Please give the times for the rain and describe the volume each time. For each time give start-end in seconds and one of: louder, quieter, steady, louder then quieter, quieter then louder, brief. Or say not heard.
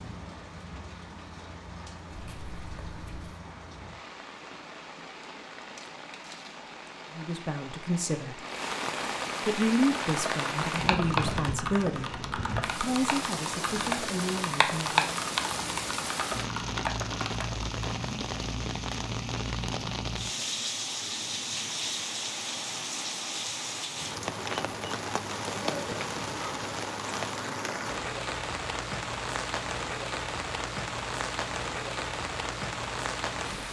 0.0-33.6 louder.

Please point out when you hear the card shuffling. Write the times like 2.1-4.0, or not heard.
2.1-3.3.